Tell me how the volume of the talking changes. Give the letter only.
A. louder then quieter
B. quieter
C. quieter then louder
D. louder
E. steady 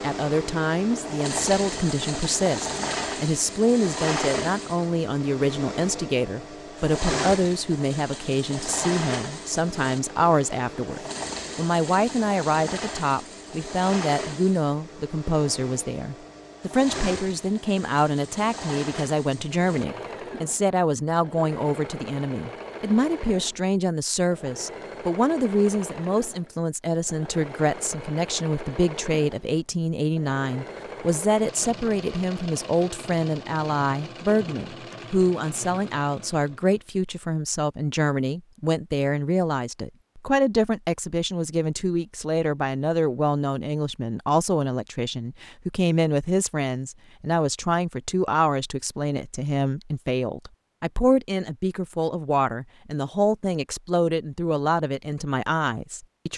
E.